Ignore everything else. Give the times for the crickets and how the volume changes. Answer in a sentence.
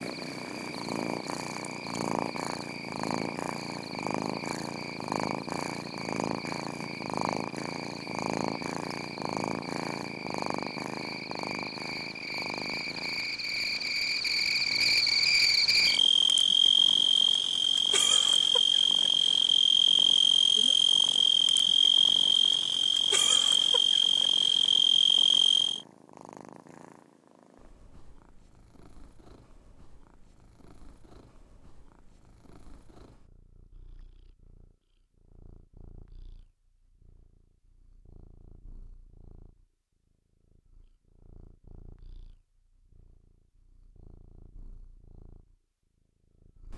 You can hear the crickets from 0.0 to 25.9 s, getting louder.